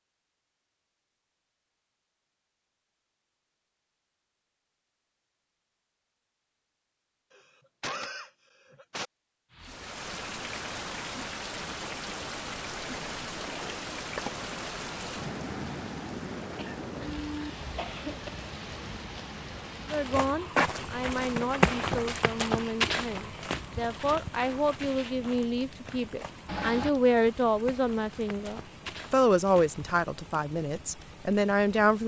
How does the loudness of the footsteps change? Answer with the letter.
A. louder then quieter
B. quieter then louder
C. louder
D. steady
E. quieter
E.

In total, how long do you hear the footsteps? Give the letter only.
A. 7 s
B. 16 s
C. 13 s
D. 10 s
D.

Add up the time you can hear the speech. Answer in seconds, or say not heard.
12 s.